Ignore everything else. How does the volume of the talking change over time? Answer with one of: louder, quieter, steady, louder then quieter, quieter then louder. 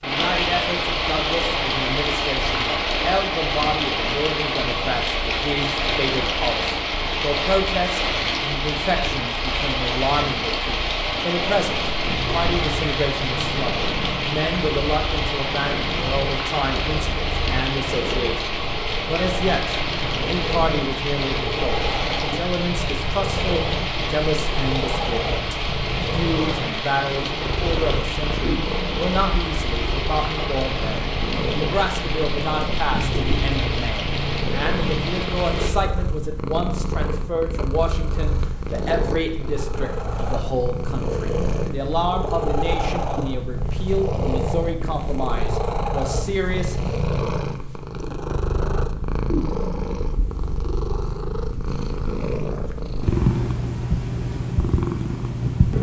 steady.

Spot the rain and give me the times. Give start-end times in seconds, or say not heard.
0.0-35.7.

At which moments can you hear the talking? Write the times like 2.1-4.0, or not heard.
0.0-46.8.